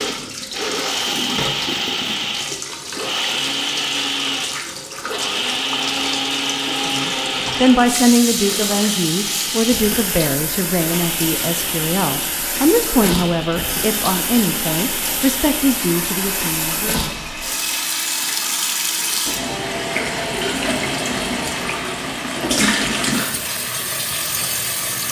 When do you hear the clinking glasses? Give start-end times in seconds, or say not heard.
not heard.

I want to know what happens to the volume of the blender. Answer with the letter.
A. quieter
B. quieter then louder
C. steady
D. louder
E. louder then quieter
A.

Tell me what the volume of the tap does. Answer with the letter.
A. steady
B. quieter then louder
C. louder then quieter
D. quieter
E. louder
E.